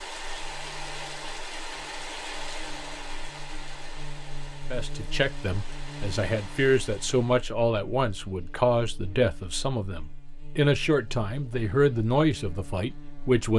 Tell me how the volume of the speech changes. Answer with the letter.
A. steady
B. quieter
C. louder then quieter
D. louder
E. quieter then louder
A.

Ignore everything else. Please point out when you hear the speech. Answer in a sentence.
The speech can be heard from 4.7 to 13.5 s.